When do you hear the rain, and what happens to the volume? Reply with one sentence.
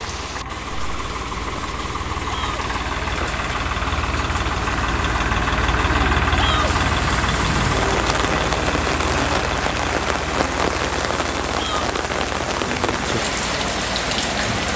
You can hear the rain from 0.0 to 14.7 s, getting louder.